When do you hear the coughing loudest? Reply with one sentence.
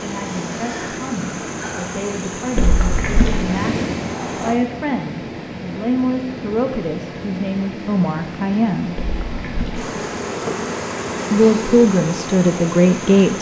The volume of the coughing peaks at 3 seconds.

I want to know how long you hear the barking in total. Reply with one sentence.
You can't hear the barking here.